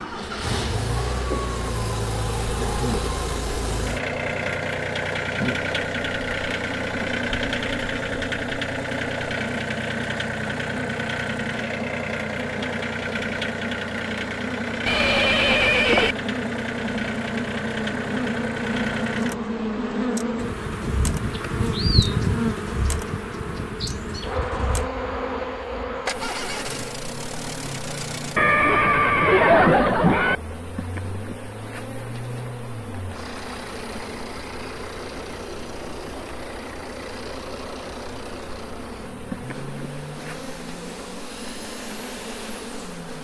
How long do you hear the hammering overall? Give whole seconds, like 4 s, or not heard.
not heard.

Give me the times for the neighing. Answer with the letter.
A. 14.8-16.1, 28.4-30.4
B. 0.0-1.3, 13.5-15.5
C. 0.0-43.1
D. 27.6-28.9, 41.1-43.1
A.